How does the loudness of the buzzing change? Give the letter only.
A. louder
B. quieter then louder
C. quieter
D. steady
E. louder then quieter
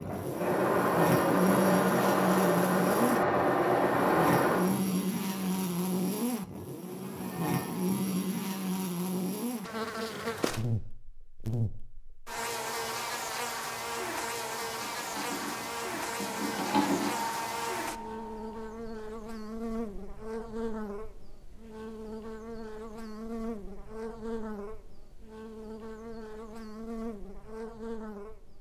C.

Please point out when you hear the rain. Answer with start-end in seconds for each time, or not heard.
not heard.